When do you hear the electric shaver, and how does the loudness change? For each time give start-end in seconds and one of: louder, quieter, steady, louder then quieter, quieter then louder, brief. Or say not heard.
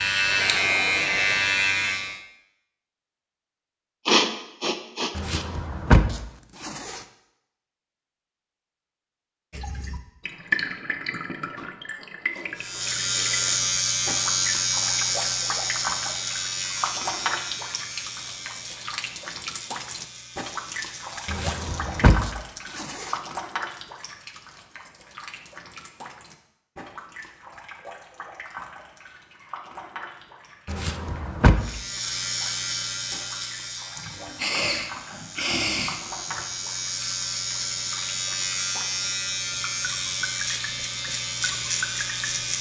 0.0-2.2 brief
12.6-22.1 quieter
31.6-42.5 quieter then louder.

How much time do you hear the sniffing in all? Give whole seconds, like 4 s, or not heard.
4 s.